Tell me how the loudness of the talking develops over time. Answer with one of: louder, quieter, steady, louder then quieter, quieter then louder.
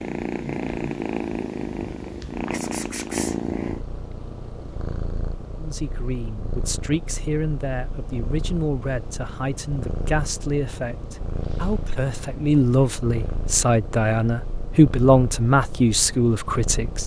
louder.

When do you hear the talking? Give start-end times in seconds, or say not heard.
5.5-17.0.